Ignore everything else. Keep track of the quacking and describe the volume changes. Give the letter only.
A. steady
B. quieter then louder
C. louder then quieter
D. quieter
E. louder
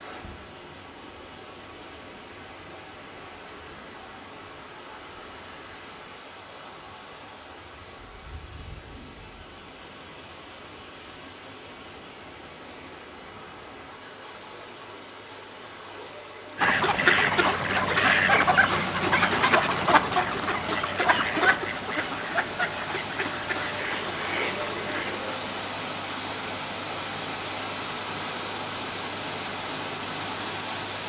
D.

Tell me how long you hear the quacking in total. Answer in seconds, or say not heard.
9 s.